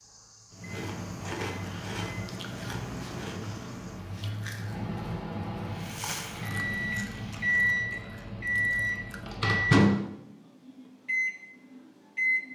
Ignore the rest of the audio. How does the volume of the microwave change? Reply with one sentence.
The loudness of the microwave goes up.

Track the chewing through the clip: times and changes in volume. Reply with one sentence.
You can hear the chewing from 0.5 to 9.4 s, getting quieter.